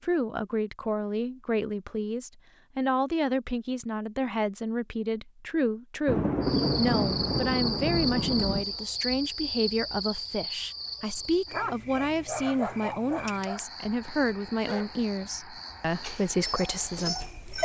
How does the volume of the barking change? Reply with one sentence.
The volume of the barking goes down, then up.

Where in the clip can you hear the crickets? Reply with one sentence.
The crickets can be heard from 6.4 to 17.5 s.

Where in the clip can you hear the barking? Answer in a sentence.
You can hear the barking from 11.5 to 17.5 s.